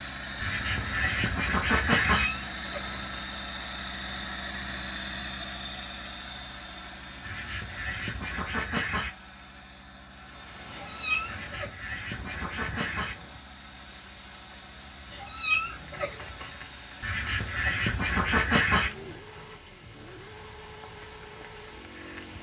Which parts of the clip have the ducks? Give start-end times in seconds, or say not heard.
0.4-2.2, 7.2-9.1, 11.2-13.2, 17.0-18.9.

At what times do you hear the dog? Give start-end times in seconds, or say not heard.
not heard.